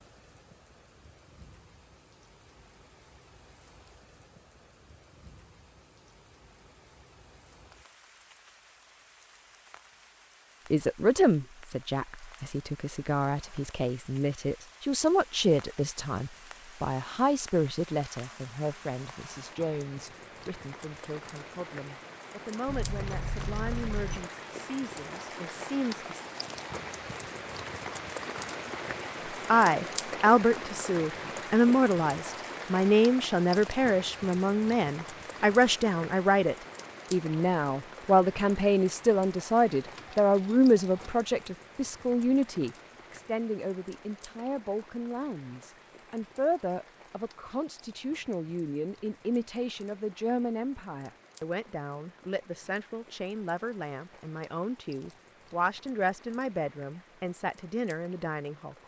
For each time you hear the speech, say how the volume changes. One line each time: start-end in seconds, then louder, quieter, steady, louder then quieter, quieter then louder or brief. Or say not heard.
10.7-26.1 quieter
29.5-58.8 quieter.